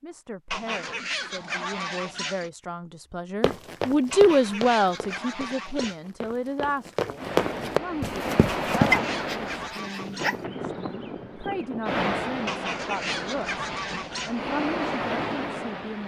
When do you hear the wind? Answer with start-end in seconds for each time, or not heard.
7.2-16.0.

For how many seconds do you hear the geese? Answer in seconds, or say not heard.
8 s.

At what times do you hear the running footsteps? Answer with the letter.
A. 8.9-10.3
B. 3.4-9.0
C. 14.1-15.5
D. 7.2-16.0
B.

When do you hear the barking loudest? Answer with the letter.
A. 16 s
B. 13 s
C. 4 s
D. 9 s
D.